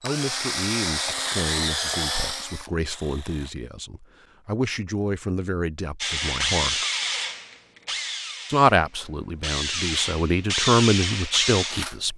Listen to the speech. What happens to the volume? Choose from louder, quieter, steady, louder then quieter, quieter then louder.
louder.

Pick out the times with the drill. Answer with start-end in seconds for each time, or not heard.
0.0-3.5, 6.0-12.0.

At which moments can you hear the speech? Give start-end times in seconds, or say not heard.
0.0-6.8, 8.4-12.1.